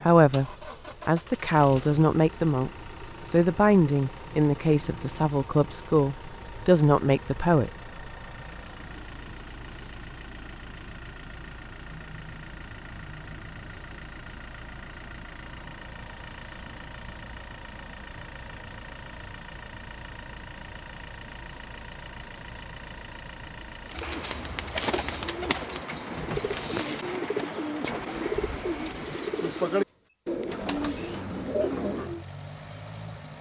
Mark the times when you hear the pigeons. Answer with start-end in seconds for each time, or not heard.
23.9-32.2.